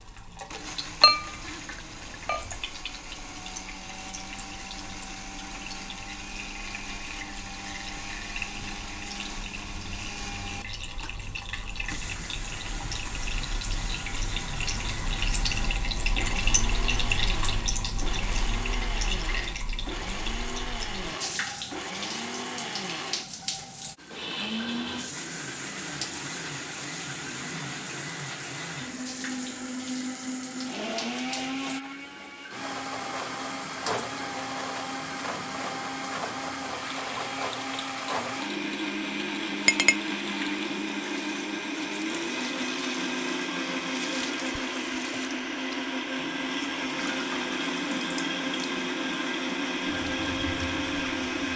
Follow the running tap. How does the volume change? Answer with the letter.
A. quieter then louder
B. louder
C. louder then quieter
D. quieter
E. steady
C.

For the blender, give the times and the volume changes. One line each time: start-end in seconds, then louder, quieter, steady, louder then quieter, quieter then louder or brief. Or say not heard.
0.0-51.5 louder.